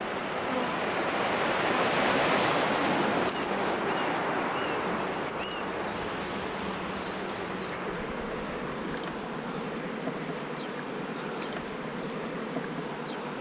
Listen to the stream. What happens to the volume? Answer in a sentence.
The volume of the stream goes down.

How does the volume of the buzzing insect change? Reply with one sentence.
The volume of the buzzing insect stays about the same.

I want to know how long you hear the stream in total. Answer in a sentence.
The stream can be heard for 13 seconds in total.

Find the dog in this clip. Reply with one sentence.
You can't hear the dog here.